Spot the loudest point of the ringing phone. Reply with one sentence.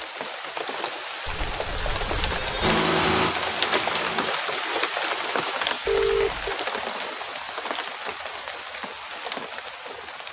The loudest moment of the ringing phone is at 6 seconds.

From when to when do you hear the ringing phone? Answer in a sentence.
You can hear the ringing phone from 1.2 to 2.8 s and from 5.8 to 6.5 s.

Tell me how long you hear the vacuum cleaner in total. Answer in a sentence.
You can hear the vacuum cleaner for 2 seconds altogether.